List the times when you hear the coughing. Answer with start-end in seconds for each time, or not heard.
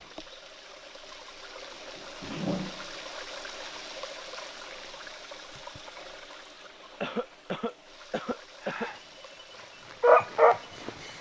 1.9-3.0, 7.0-8.9.